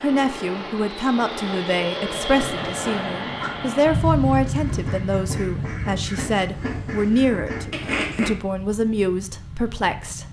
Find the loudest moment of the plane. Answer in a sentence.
The volume of the plane peaks at 4 seconds.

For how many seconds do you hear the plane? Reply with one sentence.
You can hear the plane for 10 seconds altogether.